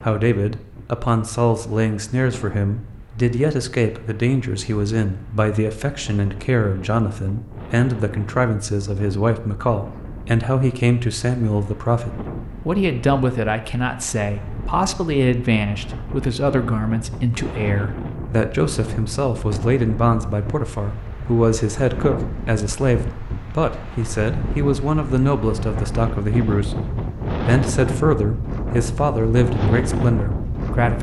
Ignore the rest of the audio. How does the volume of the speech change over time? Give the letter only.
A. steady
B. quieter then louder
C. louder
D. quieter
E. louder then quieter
A.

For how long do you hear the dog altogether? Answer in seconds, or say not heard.
not heard.